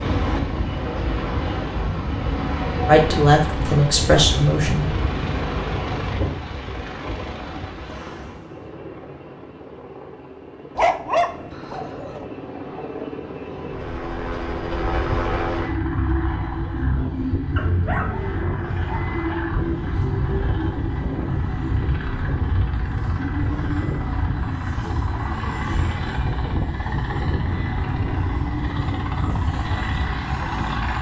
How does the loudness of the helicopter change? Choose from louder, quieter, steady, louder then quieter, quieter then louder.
quieter then louder.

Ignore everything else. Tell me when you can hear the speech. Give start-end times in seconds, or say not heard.
2.9-4.9.